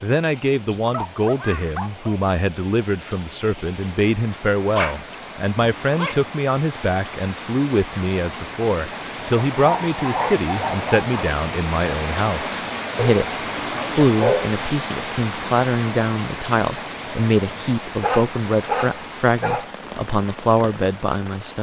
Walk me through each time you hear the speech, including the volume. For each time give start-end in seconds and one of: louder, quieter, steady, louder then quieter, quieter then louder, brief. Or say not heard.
0.0-21.5 steady.